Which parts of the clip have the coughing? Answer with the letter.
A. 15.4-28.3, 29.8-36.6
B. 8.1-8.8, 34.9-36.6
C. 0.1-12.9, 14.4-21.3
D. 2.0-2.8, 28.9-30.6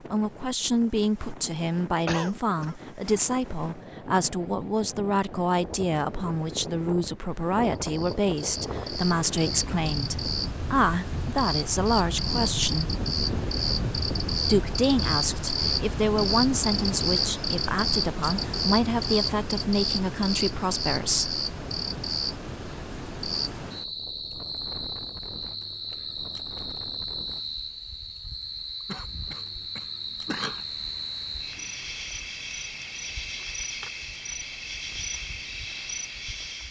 D.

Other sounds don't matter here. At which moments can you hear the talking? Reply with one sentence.
You can hear the talking from 0.1 to 12.9 s and from 14.4 to 21.3 s.